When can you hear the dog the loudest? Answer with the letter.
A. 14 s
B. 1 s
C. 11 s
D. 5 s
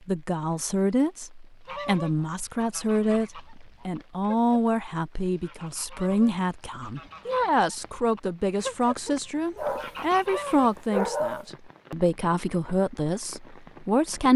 C.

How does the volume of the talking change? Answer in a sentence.
The loudness of the talking stays about the same.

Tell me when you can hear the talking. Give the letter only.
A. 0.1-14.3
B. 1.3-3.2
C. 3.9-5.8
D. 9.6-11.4
A.